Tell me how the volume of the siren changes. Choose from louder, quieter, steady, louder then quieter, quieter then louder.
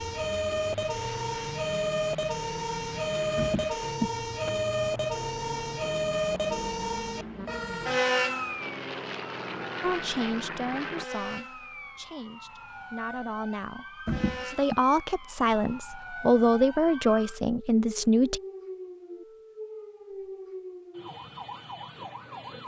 quieter.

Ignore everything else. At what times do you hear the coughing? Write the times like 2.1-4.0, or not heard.
3.4-4.5, 14.1-14.8.